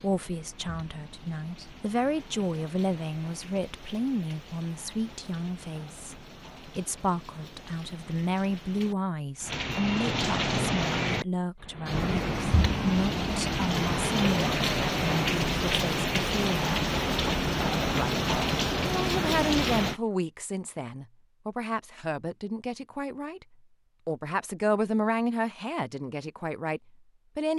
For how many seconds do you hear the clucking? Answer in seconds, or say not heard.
not heard.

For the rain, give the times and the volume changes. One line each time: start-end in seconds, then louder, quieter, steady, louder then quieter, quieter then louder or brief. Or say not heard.
0.0-20.0 louder.